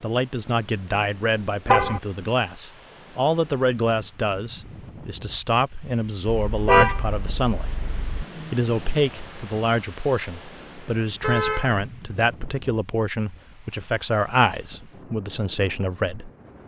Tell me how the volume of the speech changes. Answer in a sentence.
The volume of the speech stays about the same.